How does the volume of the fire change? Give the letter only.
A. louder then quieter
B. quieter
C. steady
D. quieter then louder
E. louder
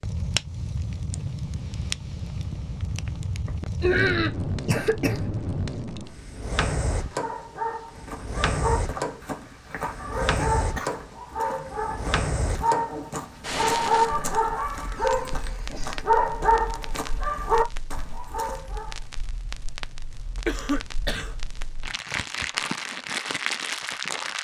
D.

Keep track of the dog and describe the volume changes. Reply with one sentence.
The volume of the dog goes up.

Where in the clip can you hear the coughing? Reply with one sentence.
You can hear the coughing from 3.5 to 5.2 s, from 9.2 to 11.1 s and from 20.4 to 21.3 s.